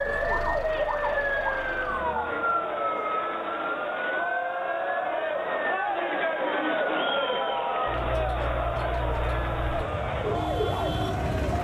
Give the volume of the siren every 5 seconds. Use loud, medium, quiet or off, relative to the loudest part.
loud, medium, loud.